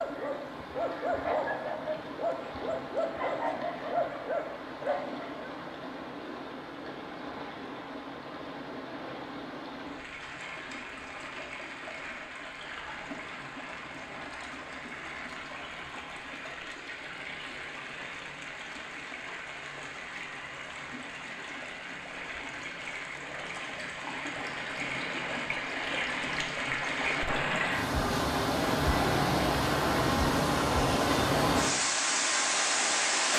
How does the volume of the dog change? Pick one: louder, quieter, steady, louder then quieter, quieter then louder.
steady.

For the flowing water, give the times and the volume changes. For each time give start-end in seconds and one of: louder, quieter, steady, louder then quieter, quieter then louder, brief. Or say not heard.
0.0-33.3 louder.